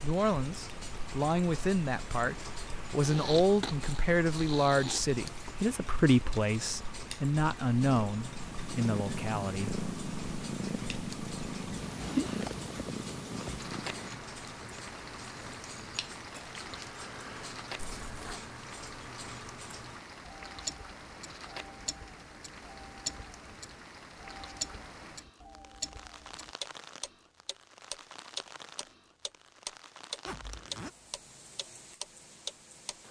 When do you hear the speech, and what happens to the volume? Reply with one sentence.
The speech can be heard from 0.0 to 9.8 s, at a steady volume.